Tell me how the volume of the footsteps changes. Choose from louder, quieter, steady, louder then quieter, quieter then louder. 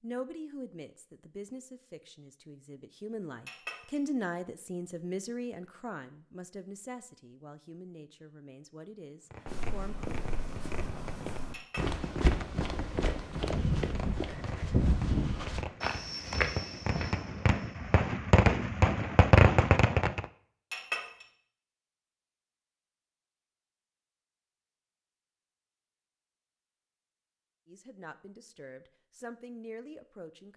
louder.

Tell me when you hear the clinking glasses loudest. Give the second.
21 s.